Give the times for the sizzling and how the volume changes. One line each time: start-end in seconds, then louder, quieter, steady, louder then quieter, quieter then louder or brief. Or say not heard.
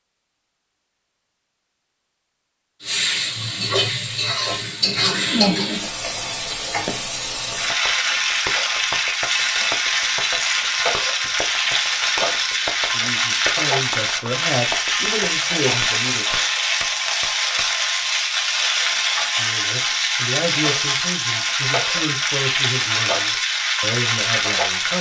2.8-24.9 steady.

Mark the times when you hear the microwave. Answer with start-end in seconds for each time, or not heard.
not heard.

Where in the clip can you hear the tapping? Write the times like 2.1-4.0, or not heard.
6.8-17.6.